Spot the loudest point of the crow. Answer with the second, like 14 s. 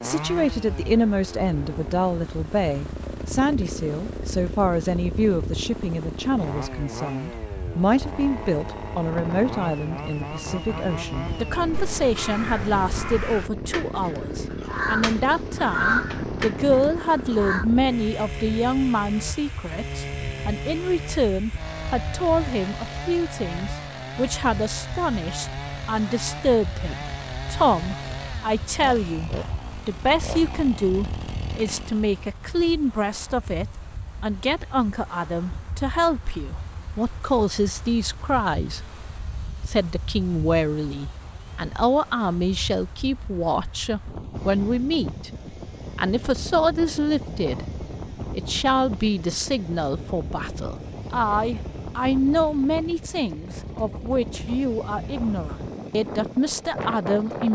16 s.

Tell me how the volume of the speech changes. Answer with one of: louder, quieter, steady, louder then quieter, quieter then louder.
steady.